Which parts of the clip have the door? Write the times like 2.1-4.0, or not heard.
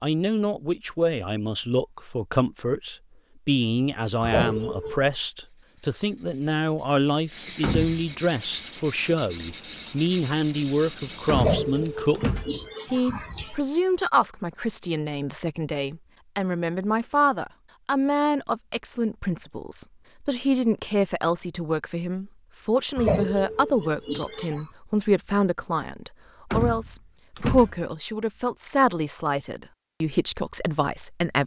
7.6-8.1, 11.2-12.7, 26.5-27.9.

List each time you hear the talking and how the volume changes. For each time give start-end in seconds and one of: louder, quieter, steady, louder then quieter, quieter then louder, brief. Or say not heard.
0.0-12.2 steady
12.9-31.4 steady.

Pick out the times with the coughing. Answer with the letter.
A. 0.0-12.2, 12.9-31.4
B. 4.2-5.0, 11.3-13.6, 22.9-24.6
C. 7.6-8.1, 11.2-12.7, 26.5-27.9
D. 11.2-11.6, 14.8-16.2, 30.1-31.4
B.